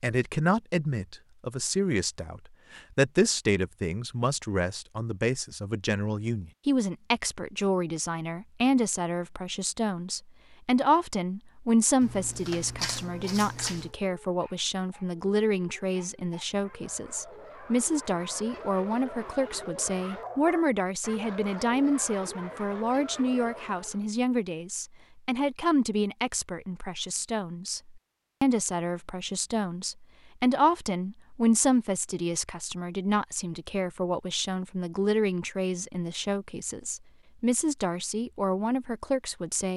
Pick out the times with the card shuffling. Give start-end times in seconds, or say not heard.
12.0-13.9.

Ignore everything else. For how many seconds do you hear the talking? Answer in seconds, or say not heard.
40 s.